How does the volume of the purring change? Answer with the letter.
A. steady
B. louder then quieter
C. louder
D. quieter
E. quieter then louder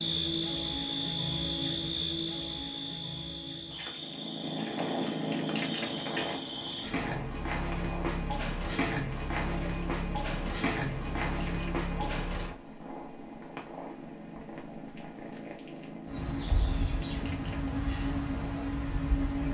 D.